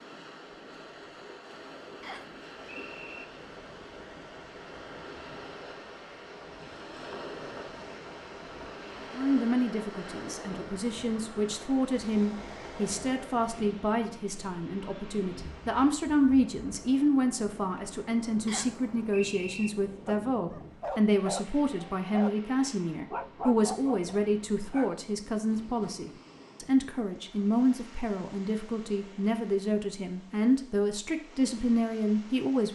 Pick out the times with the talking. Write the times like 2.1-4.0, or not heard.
9.2-32.6.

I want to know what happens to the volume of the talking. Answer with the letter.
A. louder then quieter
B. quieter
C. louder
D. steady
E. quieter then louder
D.